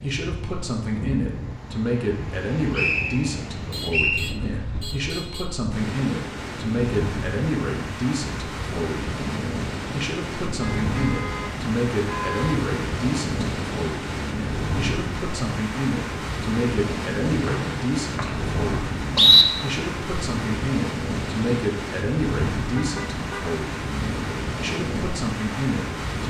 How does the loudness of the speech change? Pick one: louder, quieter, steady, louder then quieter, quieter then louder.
steady.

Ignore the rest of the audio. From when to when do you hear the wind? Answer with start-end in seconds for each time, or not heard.
0.0-26.2.